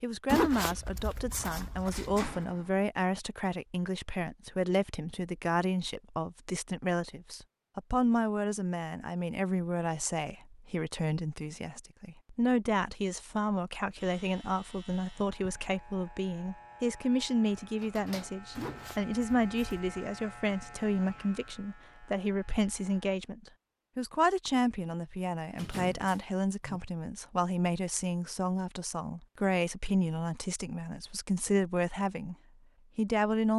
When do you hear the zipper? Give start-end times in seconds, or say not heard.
0.2-2.4, 18.6-19.8.